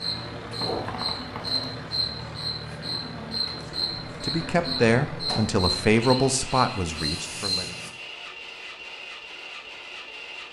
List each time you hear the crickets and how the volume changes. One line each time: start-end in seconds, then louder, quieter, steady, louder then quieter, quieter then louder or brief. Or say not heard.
0.0-7.9 steady.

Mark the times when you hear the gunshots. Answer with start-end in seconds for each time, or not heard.
0.6-1.8.